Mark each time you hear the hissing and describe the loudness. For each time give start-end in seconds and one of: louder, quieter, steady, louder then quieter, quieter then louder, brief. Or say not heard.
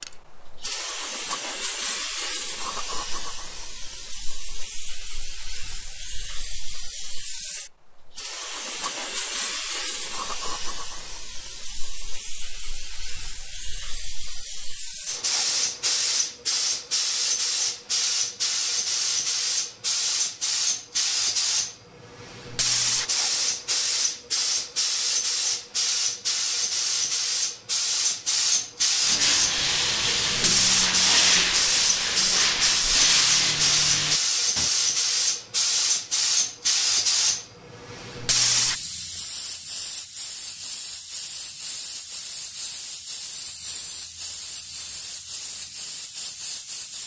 0.0-47.0 louder then quieter.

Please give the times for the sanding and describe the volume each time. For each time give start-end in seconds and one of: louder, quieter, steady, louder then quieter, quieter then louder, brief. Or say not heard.
29.0-34.7 steady.